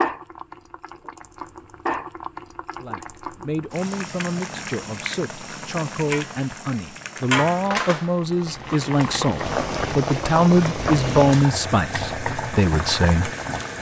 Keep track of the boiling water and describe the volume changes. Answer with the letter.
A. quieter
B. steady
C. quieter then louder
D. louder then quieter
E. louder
E.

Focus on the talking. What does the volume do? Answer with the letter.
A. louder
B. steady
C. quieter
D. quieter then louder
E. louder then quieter
A.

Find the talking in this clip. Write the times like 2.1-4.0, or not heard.
2.8-13.3.